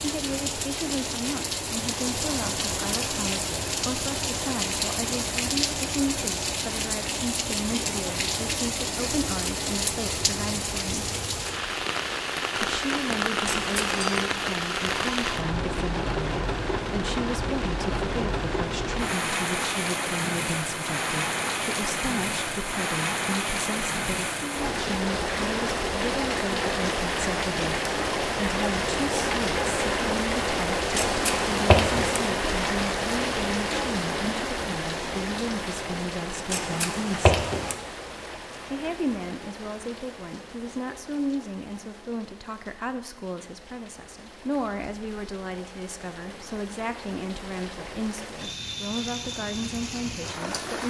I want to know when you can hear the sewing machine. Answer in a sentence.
You can't hear the sewing machine here.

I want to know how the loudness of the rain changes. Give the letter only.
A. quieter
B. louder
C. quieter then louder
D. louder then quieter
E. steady
A.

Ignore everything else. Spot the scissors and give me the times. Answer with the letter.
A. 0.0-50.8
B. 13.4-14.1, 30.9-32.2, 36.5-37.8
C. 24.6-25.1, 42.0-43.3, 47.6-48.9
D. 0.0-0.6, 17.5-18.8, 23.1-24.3
B.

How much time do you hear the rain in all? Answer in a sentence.
The rain can be heard for 51 seconds in total.